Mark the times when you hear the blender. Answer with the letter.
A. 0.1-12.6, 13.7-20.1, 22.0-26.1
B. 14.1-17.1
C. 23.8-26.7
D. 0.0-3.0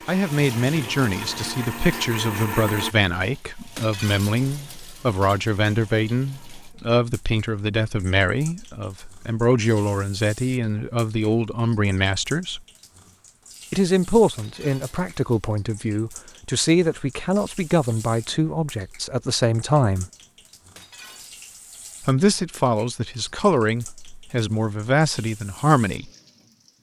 D.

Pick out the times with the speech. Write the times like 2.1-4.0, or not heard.
0.1-12.6, 13.7-20.1, 22.0-26.1.